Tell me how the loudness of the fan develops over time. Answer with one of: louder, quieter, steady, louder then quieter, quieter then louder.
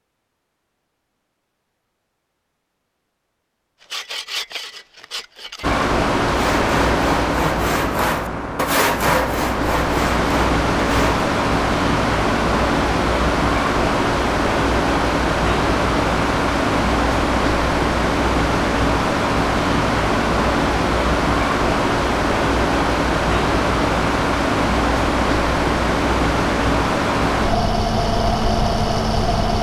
steady.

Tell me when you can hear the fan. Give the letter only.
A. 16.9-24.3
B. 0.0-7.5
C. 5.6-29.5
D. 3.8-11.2
C.